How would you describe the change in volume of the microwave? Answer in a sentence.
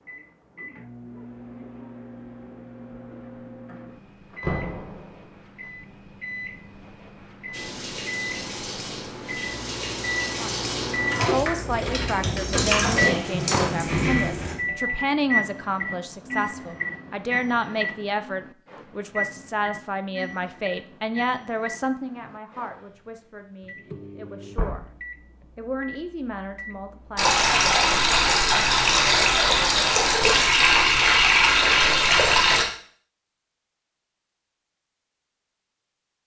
The loudness of the microwave goes up, then down.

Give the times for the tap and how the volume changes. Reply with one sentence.
The tap can be heard from 7.5 to 14.6 s, getting louder; and from 27.1 to 32.6 s, at a steady volume.